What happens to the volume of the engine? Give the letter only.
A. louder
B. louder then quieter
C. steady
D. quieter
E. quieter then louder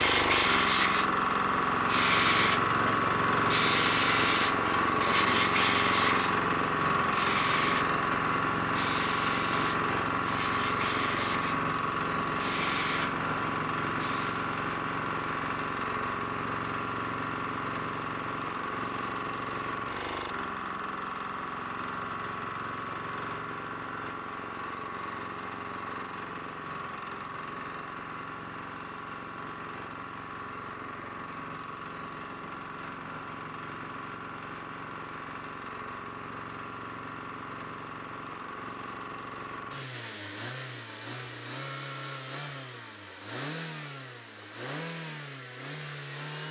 D.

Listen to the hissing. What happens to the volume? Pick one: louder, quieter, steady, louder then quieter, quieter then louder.
quieter.